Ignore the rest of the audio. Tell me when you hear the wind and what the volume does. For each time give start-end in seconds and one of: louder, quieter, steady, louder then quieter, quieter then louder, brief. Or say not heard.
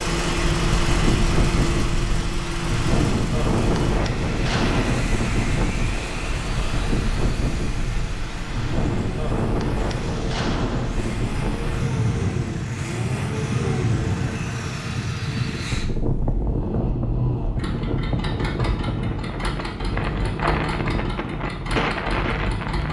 0.0-22.8 steady.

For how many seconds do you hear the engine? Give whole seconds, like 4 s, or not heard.
23 s.